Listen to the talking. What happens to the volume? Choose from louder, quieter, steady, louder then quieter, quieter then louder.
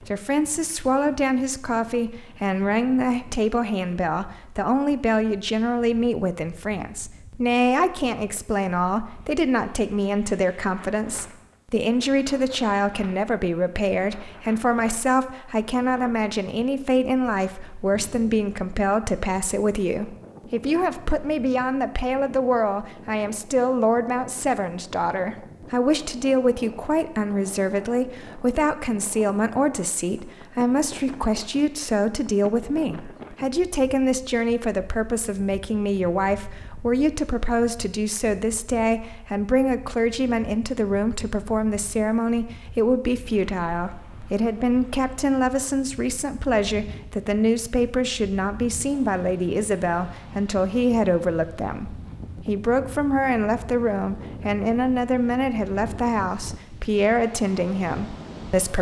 steady.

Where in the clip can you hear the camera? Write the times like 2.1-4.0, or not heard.
not heard.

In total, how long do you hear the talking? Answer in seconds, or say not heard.
59 s.